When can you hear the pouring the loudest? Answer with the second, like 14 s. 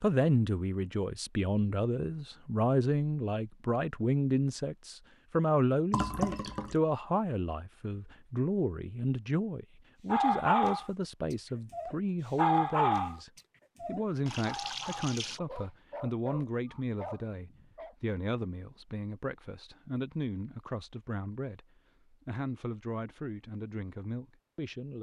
6 s.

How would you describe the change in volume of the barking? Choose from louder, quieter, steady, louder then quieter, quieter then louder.
quieter.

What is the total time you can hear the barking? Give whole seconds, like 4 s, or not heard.
7 s.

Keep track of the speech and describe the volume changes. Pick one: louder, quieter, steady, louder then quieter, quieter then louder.
quieter.